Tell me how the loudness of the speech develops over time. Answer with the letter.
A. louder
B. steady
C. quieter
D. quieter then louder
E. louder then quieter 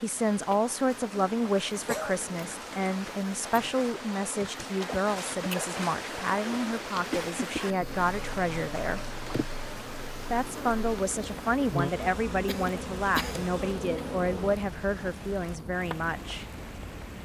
B.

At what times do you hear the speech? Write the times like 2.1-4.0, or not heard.
0.0-9.0, 10.2-16.4.